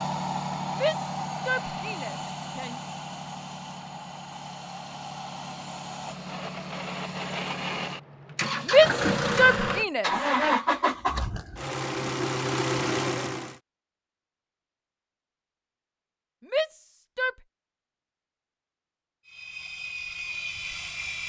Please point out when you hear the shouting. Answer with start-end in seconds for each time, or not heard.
0.7-2.8, 8.7-10.1, 16.5-17.4.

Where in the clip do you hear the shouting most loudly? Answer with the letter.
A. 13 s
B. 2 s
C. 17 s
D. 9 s
D.